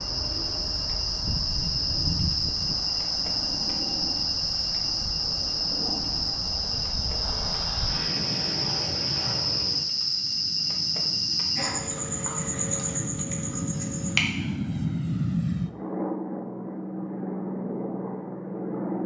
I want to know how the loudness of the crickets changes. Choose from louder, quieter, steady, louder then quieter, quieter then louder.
steady.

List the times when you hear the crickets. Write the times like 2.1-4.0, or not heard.
0.0-14.2.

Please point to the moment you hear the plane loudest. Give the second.
15 s.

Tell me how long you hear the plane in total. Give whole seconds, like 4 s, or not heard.
19 s.